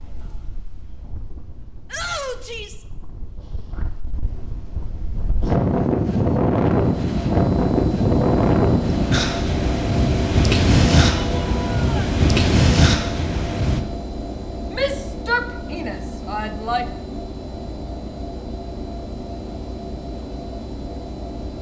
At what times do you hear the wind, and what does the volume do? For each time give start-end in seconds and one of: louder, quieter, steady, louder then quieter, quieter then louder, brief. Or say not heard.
0.0-13.8 louder.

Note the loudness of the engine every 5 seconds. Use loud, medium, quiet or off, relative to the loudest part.
off, loud, loud, medium, medium.